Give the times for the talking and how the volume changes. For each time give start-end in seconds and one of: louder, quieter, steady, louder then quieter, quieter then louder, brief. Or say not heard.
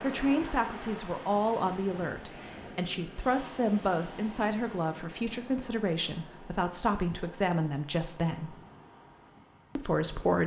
0.0-8.6 steady
9.8-10.4 brief.